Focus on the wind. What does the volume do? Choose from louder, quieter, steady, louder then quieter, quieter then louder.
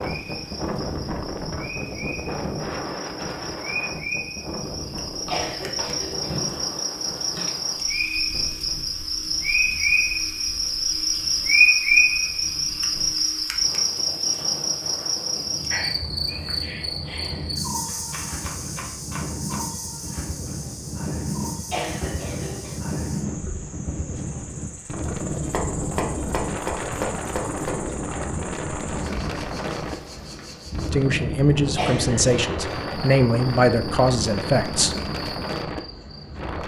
quieter then louder.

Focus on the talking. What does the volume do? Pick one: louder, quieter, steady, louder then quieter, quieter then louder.
steady.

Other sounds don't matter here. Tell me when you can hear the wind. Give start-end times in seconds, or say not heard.
0.0-36.6.